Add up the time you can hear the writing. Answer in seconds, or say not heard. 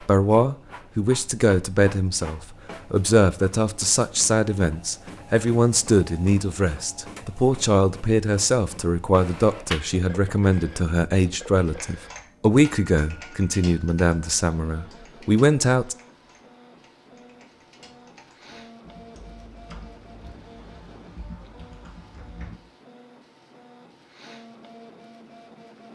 not heard.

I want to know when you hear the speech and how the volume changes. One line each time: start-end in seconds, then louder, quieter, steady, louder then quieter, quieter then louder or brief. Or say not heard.
0.0-15.9 steady.